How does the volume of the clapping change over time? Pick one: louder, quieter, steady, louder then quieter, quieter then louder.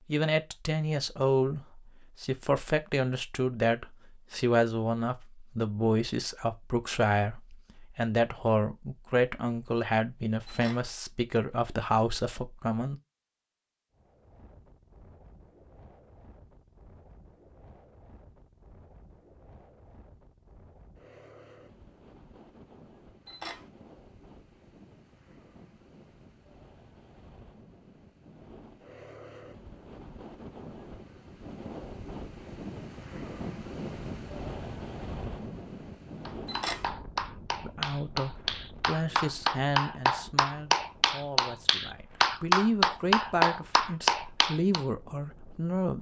louder.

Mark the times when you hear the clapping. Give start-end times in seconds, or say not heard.
36.2-44.9.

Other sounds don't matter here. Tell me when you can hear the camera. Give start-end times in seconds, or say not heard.
10.4-10.9, 23.2-23.7, 36.5-36.9.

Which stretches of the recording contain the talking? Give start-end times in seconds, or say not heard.
0.1-13.0, 37.6-45.9.